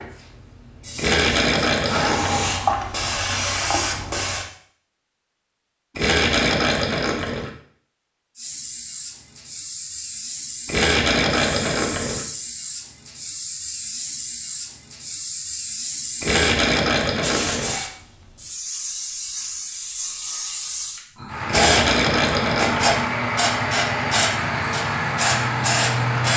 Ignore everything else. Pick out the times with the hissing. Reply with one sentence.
You can hear the hissing from 0.0 to 4.5 s and from 8.3 to 26.3 s.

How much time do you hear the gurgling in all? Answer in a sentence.
The gurgling can be heard for 8 seconds in total.